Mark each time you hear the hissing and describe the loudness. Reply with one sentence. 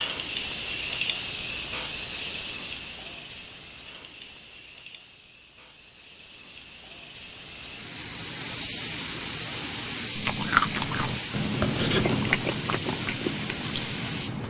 You can hear the hissing from 0.0 to 14.4 s, getting quieter then louder.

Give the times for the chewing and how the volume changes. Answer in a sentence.
You can hear the chewing from 10.2 to 14.4 s, getting quieter.